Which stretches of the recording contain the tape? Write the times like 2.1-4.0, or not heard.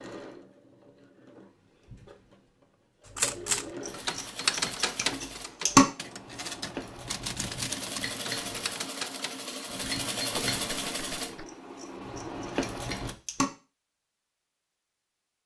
not heard.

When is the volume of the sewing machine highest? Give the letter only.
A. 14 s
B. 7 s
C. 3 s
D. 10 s
D.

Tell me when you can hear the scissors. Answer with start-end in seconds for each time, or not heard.
3.9-5.8, 11.4-13.4.